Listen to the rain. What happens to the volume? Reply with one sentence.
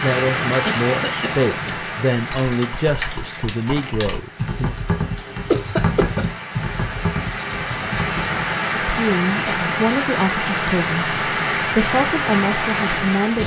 The volume of the rain goes down, then up.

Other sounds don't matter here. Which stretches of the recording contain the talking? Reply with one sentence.
The talking can be heard from 0.0 to 4.8 s and from 8.8 to 13.4 s.